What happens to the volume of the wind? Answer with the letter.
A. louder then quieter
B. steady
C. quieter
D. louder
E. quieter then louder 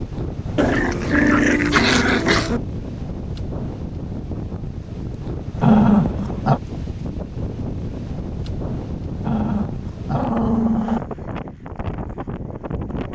B.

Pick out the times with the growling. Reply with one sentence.
The growling can be heard from 0.6 to 2.6 s, from 5.6 to 6.6 s and from 9.2 to 11.0 s.